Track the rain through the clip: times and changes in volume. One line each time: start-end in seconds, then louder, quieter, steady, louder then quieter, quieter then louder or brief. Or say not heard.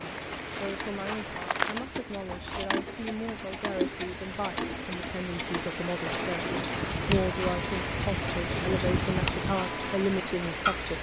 0.0-10.9 louder.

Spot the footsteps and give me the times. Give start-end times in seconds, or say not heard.
0.0-2.7.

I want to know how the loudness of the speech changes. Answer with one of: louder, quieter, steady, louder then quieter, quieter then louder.
louder.